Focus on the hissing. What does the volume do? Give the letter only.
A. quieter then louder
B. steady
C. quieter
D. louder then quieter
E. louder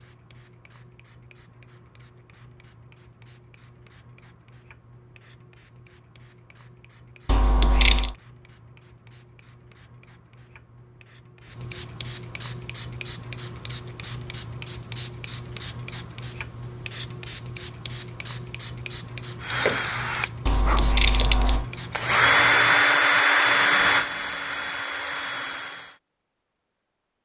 E.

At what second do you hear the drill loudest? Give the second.
23 s.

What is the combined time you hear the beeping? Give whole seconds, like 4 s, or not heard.
2 s.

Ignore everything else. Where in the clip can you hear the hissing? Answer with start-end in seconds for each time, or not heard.
0.0-22.7.